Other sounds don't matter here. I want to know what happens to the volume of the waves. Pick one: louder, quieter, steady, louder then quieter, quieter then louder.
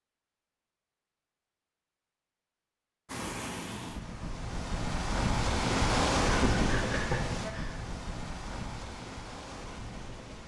louder then quieter.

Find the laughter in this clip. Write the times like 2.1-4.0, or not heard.
6.2-7.8.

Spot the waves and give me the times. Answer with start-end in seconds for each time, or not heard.
3.0-10.4.